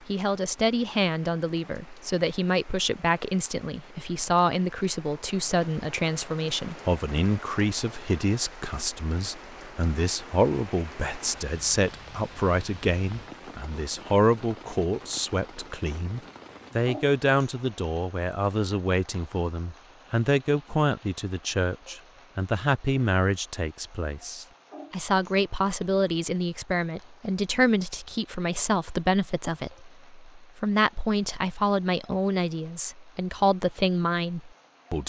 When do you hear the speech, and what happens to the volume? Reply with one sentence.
You can hear the speech from 0.1 to 35.0 s, at a steady volume.